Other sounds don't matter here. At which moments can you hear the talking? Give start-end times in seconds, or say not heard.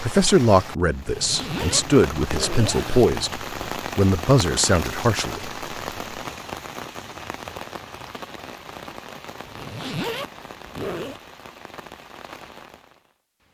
0.0-5.7.